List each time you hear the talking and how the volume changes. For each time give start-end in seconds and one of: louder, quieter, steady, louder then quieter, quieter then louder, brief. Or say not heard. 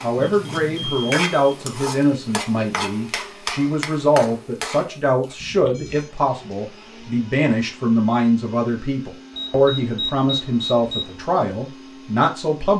0.0-12.7 steady.